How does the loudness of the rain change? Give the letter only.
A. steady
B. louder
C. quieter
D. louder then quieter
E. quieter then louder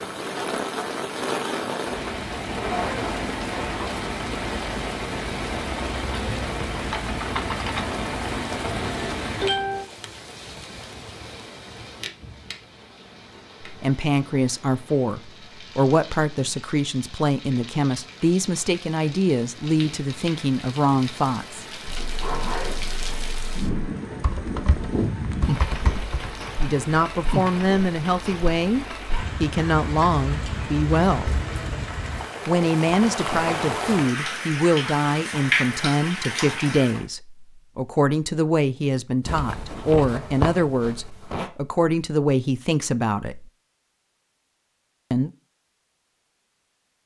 E.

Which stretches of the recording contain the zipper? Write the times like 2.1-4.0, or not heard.
2.5-4.0, 21.9-23.7, 39.2-41.5.